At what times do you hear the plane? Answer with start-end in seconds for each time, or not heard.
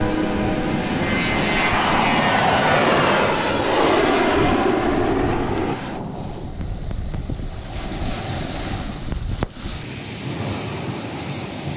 0.0-5.8.